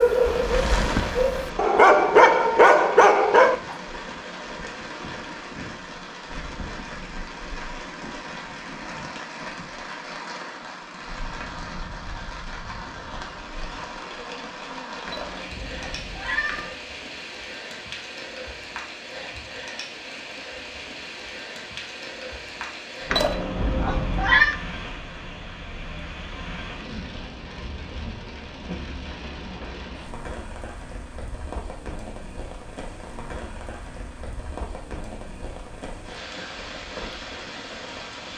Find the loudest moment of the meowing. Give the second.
24 s.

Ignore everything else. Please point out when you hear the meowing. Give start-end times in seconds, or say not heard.
15.1-16.7, 23.1-24.6.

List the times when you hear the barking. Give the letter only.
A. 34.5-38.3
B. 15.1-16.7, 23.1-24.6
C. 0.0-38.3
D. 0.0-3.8
D.